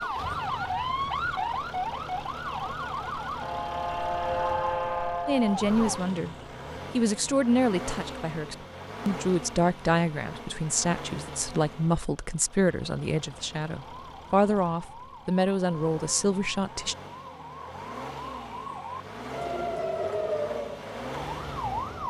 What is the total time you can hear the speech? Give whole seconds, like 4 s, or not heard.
12 s.